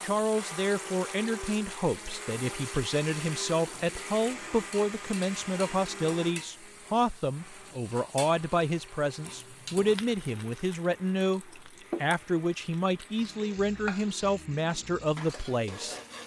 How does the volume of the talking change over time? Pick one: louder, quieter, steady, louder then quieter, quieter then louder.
steady.